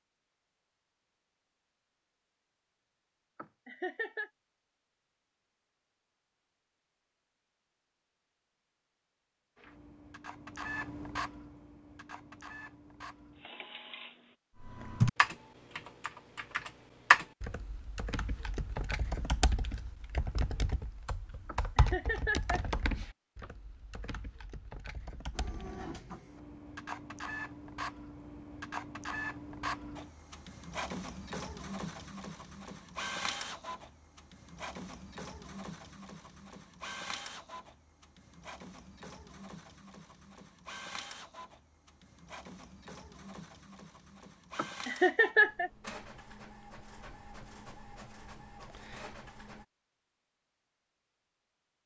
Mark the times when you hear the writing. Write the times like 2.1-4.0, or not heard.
not heard.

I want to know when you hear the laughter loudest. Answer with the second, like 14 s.
45 s.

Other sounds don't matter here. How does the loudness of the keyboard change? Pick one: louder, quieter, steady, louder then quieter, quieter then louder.
quieter.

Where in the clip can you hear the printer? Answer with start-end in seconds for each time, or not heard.
9.6-14.3, 25.3-49.6.